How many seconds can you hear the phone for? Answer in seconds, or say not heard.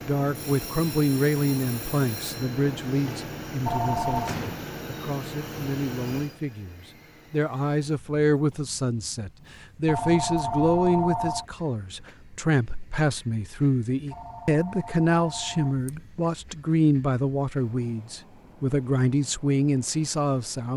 4 s.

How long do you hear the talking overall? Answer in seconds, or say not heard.
21 s.